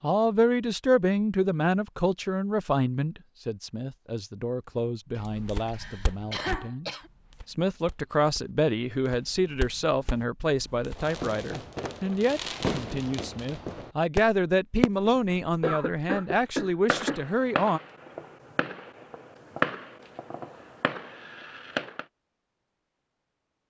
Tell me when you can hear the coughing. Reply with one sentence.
You can hear the coughing from 5.2 to 7.1 s and from 15.6 to 17.2 s.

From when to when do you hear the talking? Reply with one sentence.
You can hear the talking from 0.0 to 17.8 s.